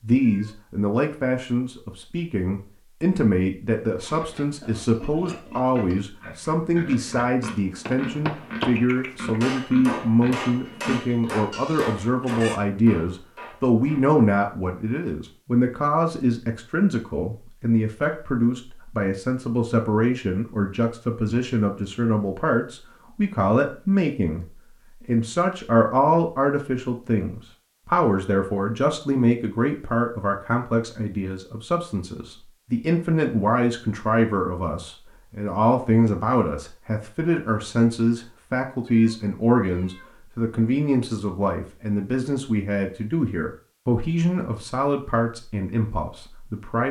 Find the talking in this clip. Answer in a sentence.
You can hear the talking from 0.0 to 46.8 s.